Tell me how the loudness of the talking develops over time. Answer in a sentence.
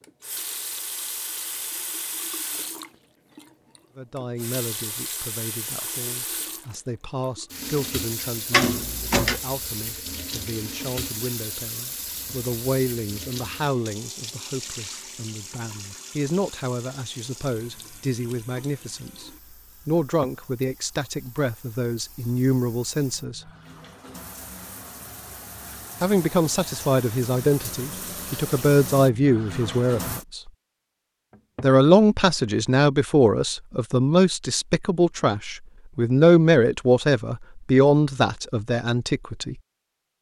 The volume of the talking goes up.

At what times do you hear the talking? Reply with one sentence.
The talking can be heard from 4.0 to 23.5 s, from 26.0 to 30.5 s and from 31.6 to 39.5 s.